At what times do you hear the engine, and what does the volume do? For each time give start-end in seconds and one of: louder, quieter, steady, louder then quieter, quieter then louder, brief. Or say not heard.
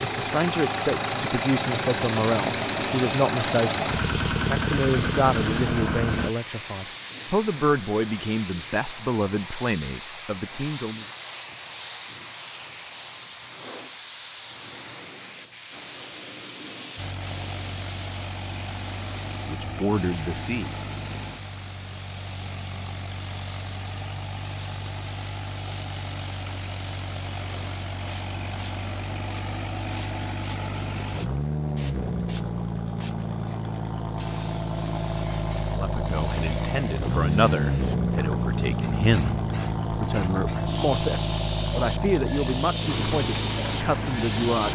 0.0-6.3 steady
16.9-44.7 louder.